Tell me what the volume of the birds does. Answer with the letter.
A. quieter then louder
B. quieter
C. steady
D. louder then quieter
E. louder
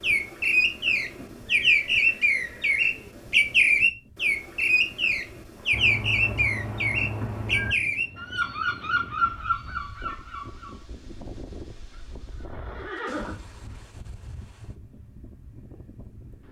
B.